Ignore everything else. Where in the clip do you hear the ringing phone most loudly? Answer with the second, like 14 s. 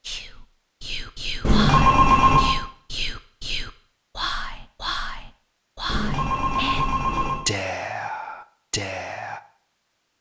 2 s.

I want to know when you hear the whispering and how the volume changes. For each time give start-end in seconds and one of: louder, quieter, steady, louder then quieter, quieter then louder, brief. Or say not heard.
0.0-9.4 steady.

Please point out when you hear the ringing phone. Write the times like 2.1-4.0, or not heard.
1.4-2.5, 5.8-7.5.